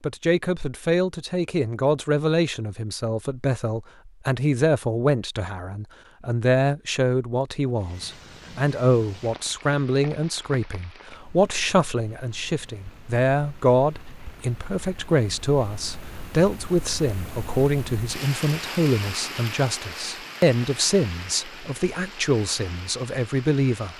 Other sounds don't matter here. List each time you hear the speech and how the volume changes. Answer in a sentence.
The speech can be heard from 0.0 to 23.9 s, at a steady volume.